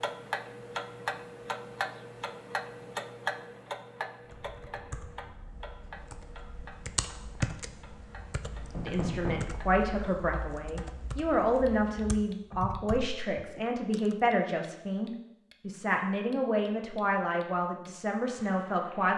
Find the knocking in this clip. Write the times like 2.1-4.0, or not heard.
8.7-9.5.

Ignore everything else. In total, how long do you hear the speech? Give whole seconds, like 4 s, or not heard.
10 s.